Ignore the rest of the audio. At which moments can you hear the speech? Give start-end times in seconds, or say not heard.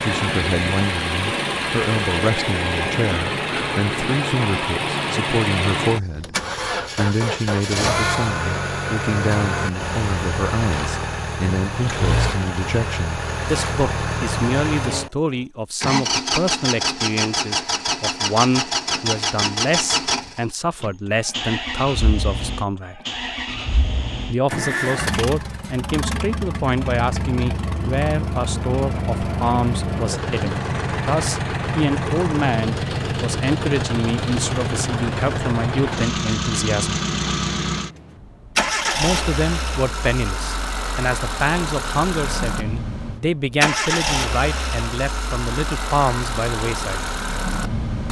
0.0-6.3, 7.0-23.0, 24.2-37.0, 39.0-47.0.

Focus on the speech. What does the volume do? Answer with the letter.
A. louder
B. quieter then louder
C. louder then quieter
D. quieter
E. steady
E.